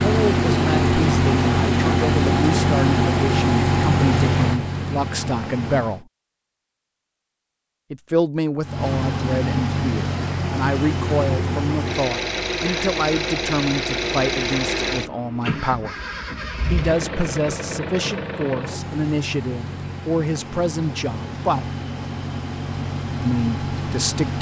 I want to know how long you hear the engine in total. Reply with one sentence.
You can hear the engine for 22 seconds altogether.